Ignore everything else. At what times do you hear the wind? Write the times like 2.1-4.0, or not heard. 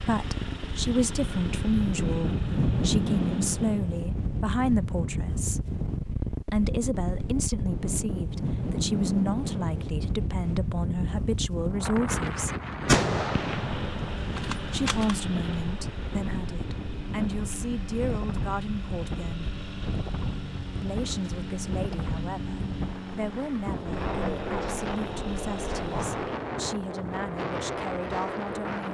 0.0-28.8.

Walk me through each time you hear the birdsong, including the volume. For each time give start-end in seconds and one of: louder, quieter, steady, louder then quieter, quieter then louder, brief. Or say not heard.
not heard.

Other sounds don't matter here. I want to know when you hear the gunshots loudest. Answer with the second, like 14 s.
13 s.